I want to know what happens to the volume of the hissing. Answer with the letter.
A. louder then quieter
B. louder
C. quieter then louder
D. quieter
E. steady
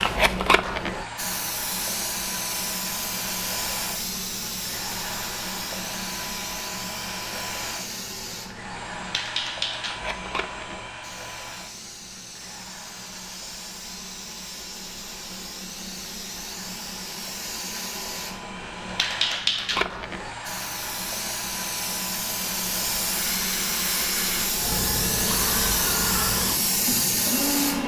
C.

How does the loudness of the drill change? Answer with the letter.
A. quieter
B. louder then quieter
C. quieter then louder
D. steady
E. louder
C.